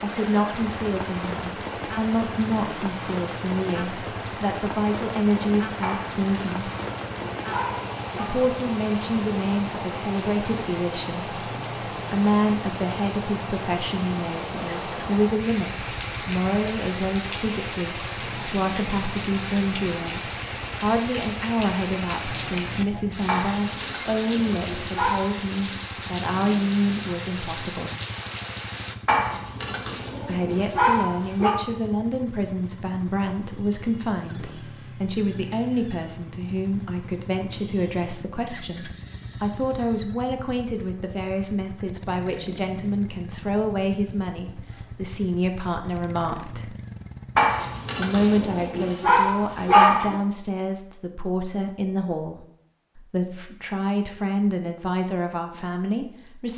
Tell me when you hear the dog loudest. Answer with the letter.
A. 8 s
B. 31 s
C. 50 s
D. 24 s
C.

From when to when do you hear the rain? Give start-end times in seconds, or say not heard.
0.0-28.9.